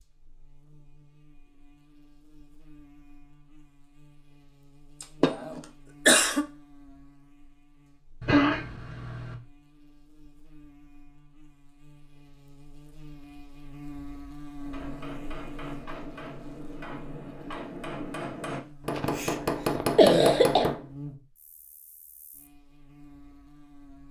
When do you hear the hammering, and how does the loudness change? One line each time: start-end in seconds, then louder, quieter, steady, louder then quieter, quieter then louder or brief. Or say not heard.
14.6-20.9 louder.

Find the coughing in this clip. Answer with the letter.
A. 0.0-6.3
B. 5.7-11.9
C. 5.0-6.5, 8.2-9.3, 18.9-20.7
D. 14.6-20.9
C.